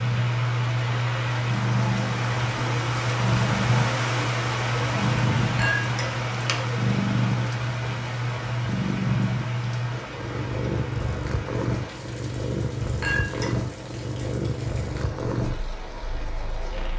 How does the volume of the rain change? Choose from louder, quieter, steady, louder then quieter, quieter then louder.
quieter.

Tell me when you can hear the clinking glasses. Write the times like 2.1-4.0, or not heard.
5.5-6.6, 13.0-13.6.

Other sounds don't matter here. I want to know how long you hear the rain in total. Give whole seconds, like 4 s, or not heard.
17 s.